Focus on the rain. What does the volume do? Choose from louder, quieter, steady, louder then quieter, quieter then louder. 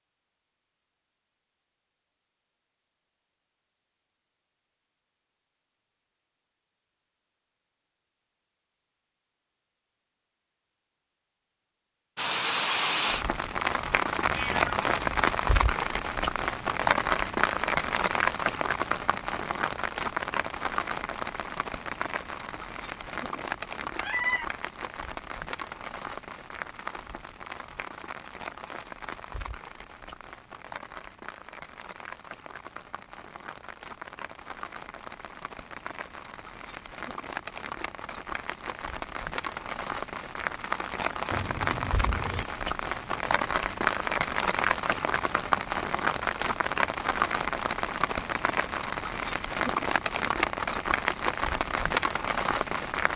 quieter then louder.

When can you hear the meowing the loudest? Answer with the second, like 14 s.
24 s.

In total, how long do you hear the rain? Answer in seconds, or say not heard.
41 s.